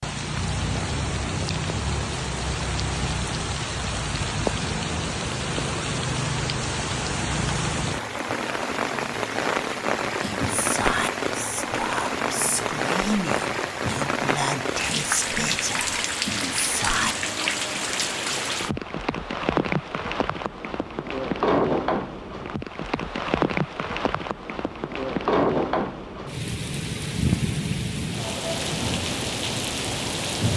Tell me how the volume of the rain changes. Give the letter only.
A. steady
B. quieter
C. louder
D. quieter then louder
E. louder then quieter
A.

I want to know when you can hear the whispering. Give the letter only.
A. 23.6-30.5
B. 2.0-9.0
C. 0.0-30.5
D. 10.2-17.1
D.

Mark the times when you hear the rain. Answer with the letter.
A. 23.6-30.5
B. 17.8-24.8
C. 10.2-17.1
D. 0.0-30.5
D.